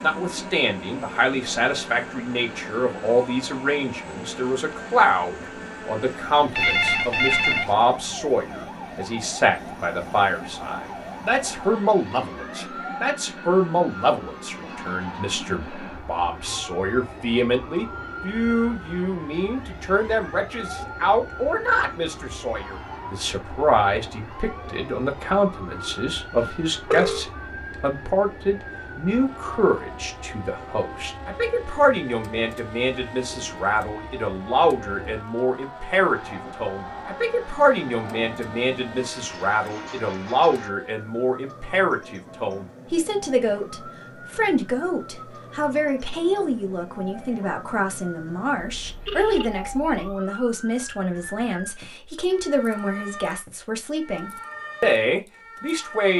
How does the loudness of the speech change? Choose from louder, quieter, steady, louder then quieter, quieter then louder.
steady.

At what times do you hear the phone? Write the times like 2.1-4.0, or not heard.
6.5-7.8, 26.4-27.2, 48.6-50.0.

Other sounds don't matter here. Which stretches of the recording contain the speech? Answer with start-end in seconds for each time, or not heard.
0.0-56.1.